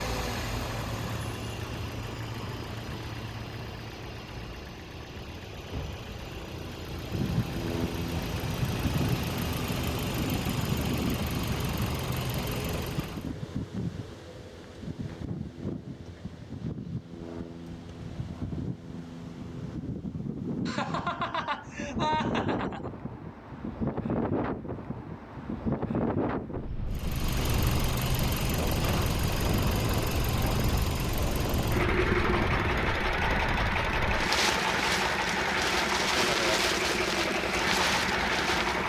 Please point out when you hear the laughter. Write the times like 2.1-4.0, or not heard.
20.6-22.9.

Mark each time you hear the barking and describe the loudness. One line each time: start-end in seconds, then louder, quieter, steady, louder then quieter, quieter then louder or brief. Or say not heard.
not heard.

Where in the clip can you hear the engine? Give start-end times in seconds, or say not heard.
0.0-13.3, 26.9-38.8.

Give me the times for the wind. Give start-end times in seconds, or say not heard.
7.1-38.8.